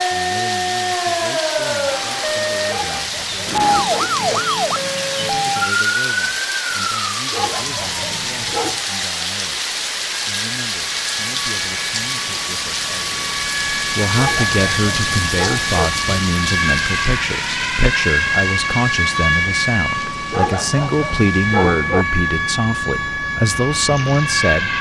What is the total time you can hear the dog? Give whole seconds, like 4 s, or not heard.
7 s.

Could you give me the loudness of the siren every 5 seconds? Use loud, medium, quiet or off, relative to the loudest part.
loud, loud, medium, loud, loud.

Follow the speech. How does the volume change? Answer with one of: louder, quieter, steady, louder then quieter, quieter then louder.
louder.